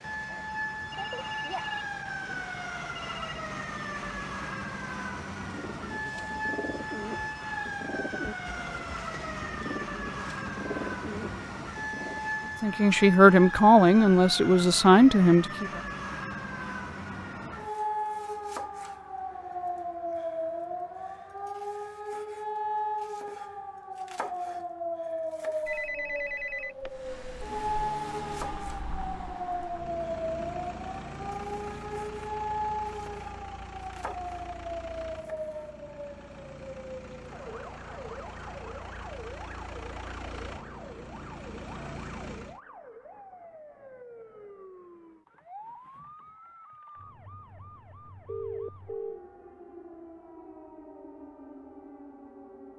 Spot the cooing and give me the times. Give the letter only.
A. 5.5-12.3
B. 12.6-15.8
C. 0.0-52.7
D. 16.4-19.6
A.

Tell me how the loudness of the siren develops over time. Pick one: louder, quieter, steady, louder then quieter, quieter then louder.
quieter.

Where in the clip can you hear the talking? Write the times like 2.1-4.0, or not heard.
12.6-15.8.